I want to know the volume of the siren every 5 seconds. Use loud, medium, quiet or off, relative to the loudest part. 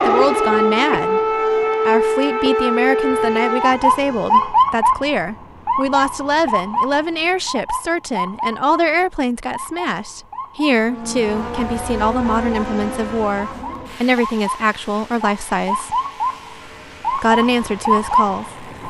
loud, medium, quiet, medium.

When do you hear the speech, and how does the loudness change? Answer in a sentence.
The speech can be heard from 0.0 to 15.9 s, at a steady volume; and briefly from 17.1 to 18.6 s.